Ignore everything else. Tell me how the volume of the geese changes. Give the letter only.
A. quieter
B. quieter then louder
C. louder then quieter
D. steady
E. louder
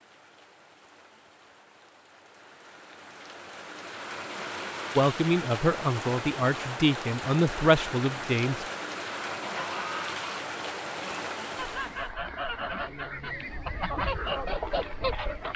E.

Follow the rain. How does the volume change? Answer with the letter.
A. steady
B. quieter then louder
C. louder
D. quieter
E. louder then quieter
C.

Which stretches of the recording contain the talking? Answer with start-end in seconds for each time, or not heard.
5.0-8.7.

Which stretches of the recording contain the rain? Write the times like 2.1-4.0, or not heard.
0.0-12.2.